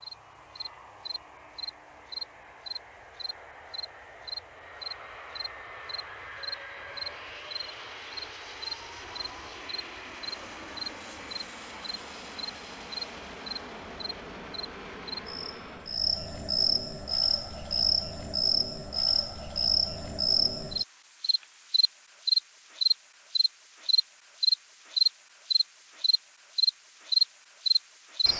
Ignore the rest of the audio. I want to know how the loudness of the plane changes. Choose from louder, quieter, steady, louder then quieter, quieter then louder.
louder.